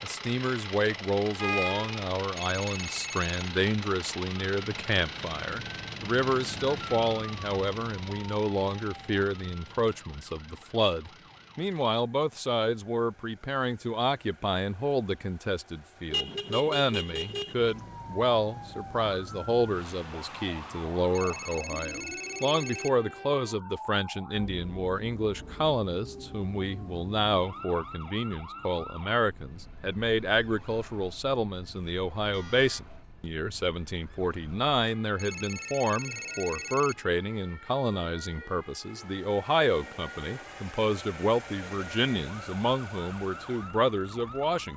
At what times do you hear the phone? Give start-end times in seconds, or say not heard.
2.3-3.5, 21.1-22.9, 35.1-37.0.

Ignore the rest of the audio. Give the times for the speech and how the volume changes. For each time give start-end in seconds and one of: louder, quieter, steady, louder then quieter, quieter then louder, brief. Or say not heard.
0.0-44.7 steady.